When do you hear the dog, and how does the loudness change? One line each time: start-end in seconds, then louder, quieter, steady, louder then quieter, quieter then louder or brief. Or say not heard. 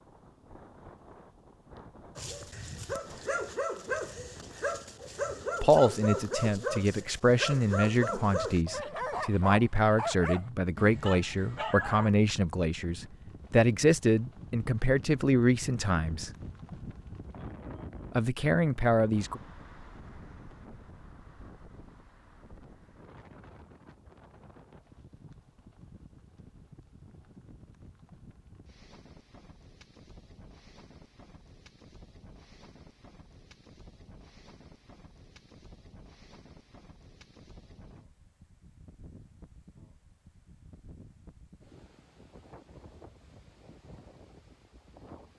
2.1-12.1 steady.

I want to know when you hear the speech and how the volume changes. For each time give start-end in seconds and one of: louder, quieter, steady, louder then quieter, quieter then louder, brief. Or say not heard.
5.6-16.3 steady
18.1-19.4 brief.